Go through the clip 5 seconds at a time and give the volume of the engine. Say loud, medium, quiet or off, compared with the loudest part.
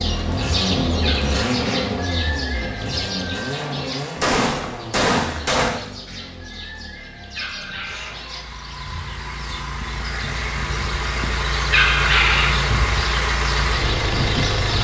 loud, quiet, loud.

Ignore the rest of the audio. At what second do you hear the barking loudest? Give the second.
12 s.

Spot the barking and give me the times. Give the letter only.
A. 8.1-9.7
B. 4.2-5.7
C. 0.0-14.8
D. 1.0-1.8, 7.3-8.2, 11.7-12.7
D.